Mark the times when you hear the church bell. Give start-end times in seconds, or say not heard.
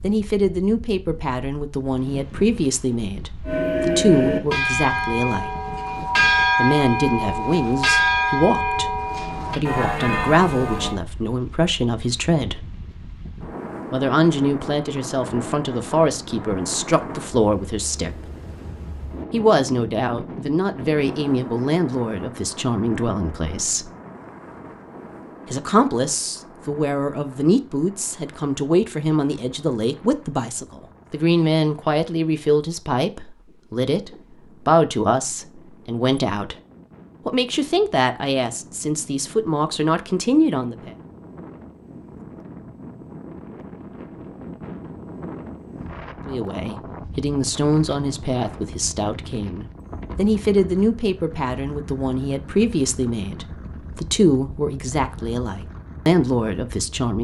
3.5-10.9.